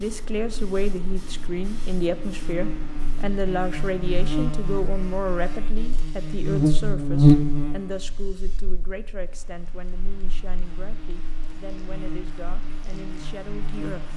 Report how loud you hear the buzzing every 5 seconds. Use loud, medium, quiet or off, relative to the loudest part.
medium, loud, quiet.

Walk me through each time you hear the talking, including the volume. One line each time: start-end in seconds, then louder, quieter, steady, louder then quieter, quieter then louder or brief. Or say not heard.
0.0-14.1 quieter.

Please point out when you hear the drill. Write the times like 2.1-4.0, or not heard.
not heard.